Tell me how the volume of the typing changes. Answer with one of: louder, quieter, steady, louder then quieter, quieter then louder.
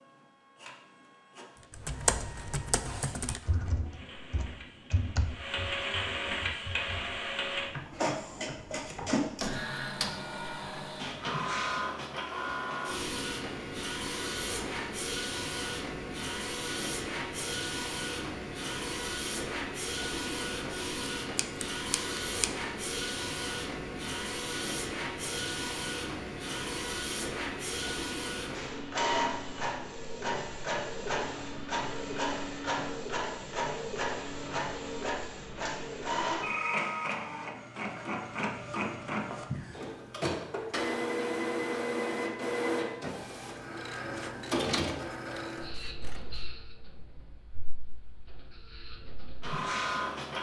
quieter then louder.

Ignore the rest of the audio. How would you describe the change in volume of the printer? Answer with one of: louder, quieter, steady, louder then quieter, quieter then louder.
steady.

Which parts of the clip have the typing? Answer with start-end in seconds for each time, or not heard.
1.7-9.2.